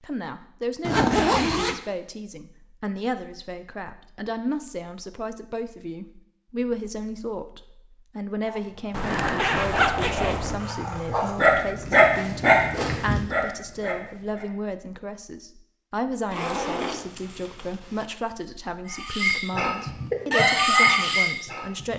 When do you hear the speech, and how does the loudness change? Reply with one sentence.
The speech can be heard from 0.0 to 21.9 s, at a steady volume.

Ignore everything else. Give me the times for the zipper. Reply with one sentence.
You can hear the zipper from 0.8 to 1.8 s, from 8.9 to 10.6 s and from 16.3 to 18.1 s.